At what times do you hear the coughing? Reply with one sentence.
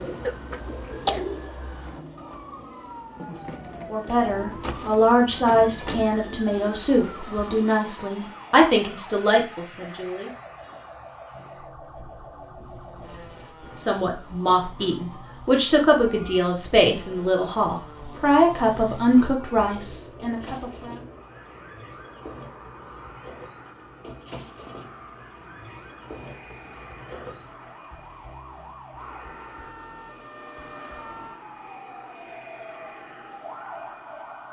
The coughing can be heard from 0.2 to 1.2 s.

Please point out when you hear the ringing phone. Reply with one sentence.
The ringing phone can't be heard in this clip.